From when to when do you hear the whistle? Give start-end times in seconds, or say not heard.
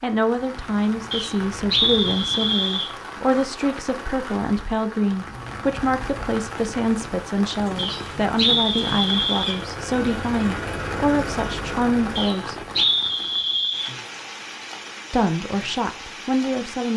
1.1-2.9, 7.8-9.6, 12.2-13.9.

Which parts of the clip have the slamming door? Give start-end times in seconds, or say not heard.
not heard.